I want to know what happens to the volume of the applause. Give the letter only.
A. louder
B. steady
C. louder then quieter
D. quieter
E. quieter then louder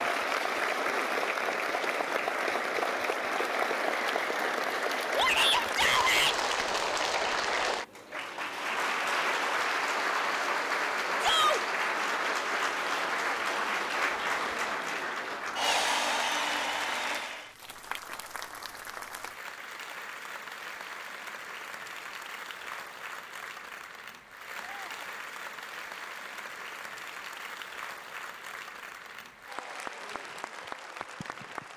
D.